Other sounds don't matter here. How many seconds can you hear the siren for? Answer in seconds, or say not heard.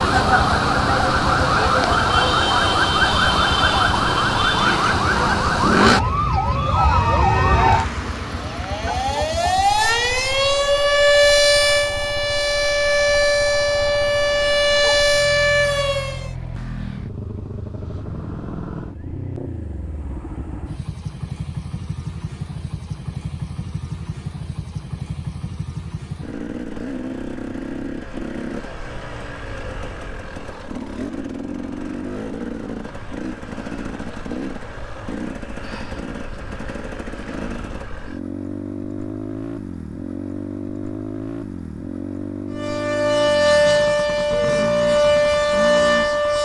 20 s.